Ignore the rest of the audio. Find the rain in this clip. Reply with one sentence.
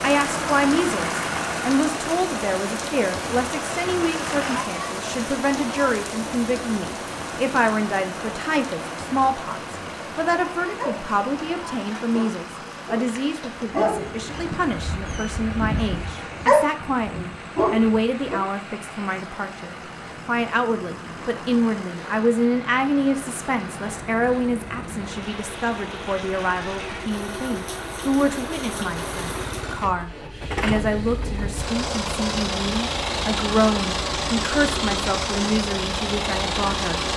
The rain can be heard from 0.0 to 29.6 s.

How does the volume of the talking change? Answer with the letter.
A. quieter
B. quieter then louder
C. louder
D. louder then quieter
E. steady
E.